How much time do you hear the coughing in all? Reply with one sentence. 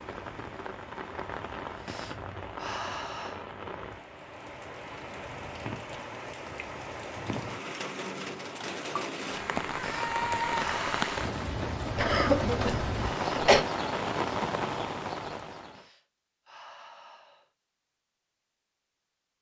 You can hear the coughing for 2 seconds altogether.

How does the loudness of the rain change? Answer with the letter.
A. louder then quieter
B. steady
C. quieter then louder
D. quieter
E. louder
E.